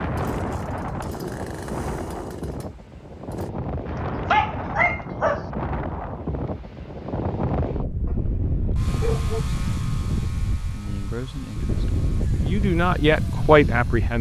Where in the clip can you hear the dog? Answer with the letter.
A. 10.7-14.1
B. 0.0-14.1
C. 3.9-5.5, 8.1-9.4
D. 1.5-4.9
C.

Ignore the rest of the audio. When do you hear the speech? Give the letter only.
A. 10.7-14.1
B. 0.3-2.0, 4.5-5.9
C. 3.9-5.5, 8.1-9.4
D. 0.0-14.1
A.